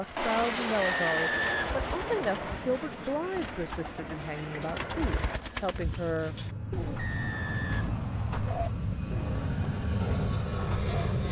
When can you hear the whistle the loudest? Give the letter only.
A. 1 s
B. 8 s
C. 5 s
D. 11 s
A.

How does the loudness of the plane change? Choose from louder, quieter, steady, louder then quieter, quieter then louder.
quieter then louder.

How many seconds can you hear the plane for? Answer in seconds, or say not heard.
11 s.